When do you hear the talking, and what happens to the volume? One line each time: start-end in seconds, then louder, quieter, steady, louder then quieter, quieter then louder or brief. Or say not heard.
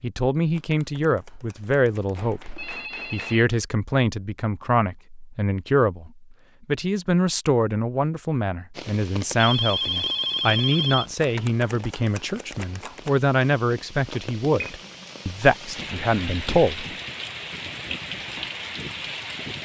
0.0-16.9 steady.